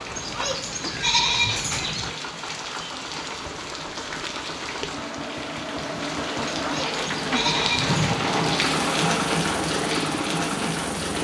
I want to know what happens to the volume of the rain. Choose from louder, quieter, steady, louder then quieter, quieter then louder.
louder.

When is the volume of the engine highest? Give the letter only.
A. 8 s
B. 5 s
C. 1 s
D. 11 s
A.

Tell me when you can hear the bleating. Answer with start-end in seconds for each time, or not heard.
0.1-2.1, 6.5-8.1.